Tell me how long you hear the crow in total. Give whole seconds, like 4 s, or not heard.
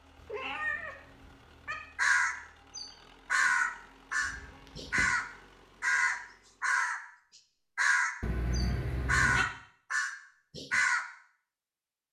8 s.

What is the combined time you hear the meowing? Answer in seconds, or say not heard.
4 s.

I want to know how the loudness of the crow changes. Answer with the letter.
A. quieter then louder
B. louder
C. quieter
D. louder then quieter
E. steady
E.